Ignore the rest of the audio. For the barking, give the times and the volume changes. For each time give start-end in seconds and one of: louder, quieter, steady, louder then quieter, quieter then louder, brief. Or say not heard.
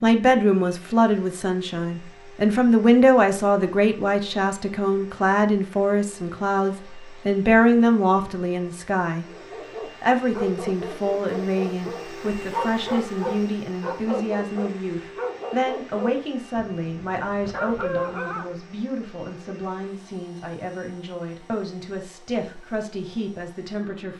9.3-18.5 steady.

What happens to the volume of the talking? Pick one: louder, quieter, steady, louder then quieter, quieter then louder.
quieter.